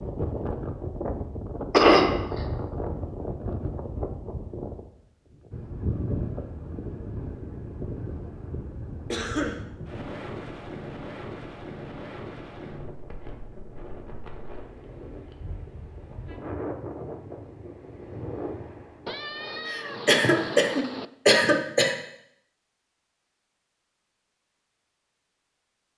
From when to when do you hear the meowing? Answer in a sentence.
You can hear the meowing from 19.1 to 21.1 s.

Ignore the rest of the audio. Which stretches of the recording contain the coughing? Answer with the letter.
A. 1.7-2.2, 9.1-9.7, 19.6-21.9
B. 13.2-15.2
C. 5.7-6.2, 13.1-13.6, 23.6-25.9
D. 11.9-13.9
A.